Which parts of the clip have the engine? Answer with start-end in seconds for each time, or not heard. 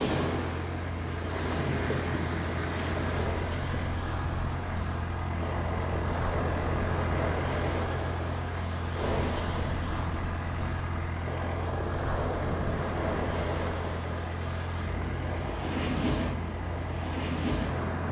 0.2-18.0.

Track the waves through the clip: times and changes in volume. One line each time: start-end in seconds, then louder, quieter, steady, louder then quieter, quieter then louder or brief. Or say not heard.
0.0-18.0 steady.